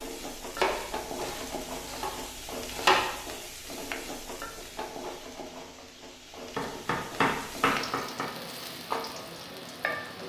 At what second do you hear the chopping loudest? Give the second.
3 s.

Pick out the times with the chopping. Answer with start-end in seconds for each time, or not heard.
0.6-3.4, 6.5-8.3.